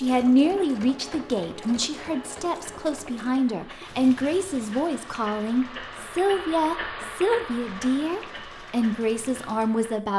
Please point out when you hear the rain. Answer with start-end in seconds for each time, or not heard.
not heard.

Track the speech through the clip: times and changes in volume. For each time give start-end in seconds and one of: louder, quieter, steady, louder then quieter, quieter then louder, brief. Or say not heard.
0.0-10.1 steady.